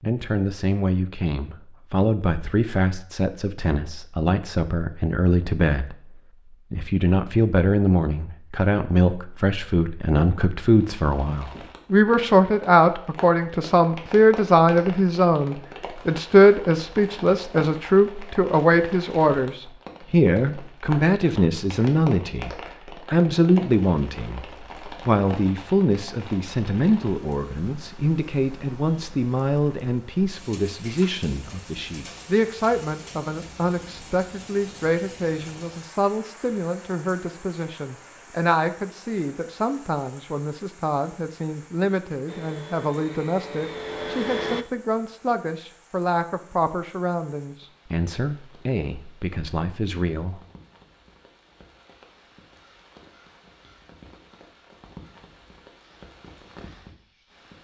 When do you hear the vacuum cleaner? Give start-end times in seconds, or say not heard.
42.2-44.6.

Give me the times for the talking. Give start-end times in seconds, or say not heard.
0.0-6.1, 6.7-50.4.